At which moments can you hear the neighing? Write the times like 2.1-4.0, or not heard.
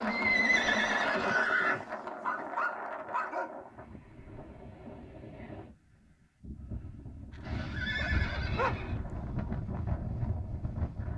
0.1-1.9, 7.4-8.9.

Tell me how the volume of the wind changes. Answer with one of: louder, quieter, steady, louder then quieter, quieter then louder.
quieter then louder.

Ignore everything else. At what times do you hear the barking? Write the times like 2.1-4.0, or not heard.
2.1-4.0, 7.3-9.3.